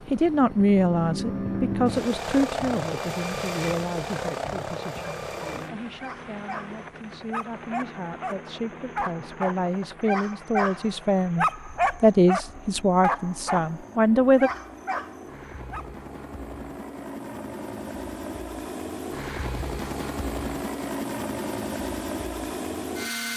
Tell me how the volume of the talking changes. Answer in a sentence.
The volume of the talking goes down, then up.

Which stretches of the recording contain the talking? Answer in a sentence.
You can hear the talking from 0.1 to 14.5 s.